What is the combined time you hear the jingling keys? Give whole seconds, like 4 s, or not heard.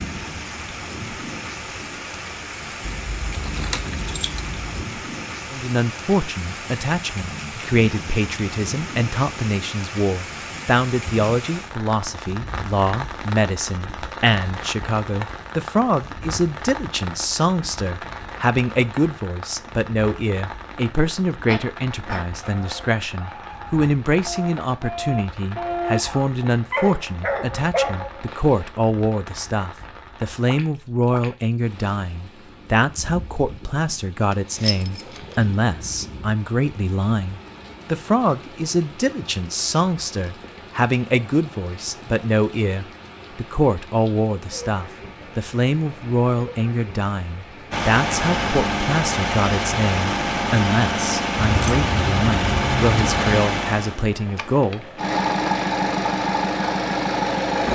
5 s.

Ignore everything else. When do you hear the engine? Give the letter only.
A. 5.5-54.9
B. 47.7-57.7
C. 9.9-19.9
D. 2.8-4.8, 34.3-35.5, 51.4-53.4
B.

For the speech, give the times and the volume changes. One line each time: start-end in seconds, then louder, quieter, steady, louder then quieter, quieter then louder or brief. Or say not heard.
5.5-54.9 steady.